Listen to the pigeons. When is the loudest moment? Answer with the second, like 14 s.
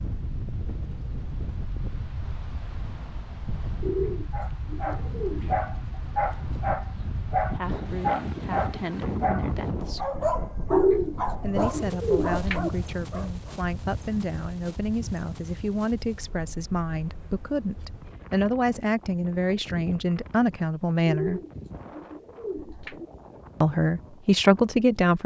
11 s.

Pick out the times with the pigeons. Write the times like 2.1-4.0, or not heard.
3.8-5.6, 10.7-12.7, 21.1-23.1.